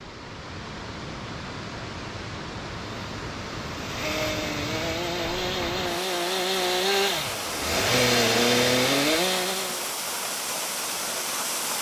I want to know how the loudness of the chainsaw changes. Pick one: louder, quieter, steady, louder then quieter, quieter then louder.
louder.